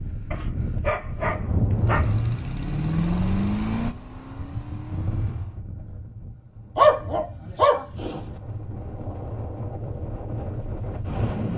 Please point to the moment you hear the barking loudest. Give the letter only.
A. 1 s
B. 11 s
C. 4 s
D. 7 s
D.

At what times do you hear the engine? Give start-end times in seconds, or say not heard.
1.8-5.6.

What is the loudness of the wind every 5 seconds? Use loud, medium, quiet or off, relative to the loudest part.
loud, medium, loud.